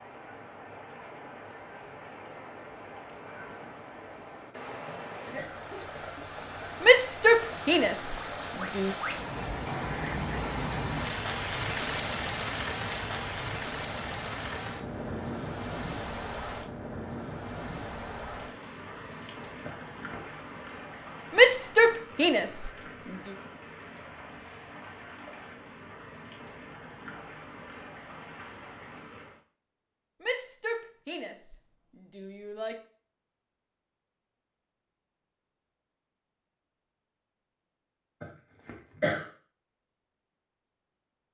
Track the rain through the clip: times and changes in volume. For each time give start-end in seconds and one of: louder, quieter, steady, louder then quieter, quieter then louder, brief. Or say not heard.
0.0-29.4 louder then quieter.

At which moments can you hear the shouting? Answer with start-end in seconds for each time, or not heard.
6.8-8.9, 21.3-23.4, 30.2-32.8.